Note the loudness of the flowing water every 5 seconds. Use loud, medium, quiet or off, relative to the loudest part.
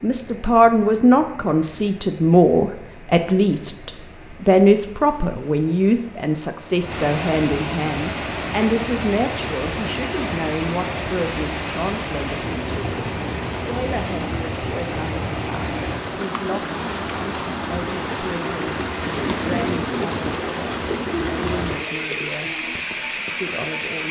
quiet, loud, loud, loud, loud.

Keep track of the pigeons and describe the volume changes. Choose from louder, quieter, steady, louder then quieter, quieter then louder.
quieter.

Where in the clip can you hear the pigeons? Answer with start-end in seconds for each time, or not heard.
18.9-23.9.